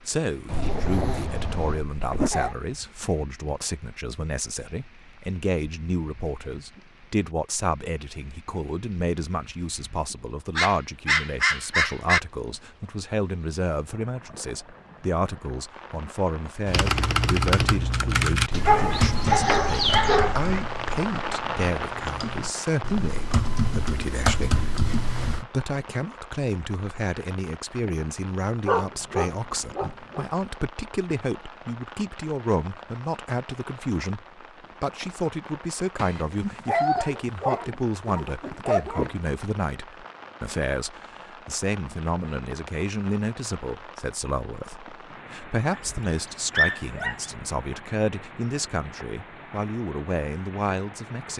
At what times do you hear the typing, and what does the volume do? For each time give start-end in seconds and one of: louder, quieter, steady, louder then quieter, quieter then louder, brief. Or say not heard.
16.6-25.4 quieter then louder.